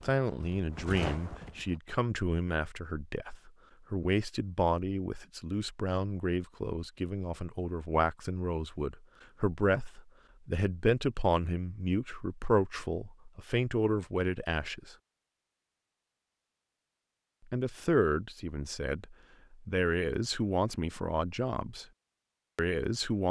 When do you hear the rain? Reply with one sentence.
You can't hear the rain here.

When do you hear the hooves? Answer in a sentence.
You can hear the hooves from 0.0 to 1.8 s.